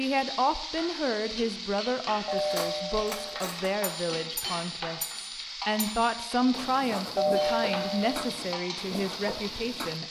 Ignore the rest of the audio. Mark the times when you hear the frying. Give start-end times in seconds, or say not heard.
0.0-10.0.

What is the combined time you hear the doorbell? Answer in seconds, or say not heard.
2 s.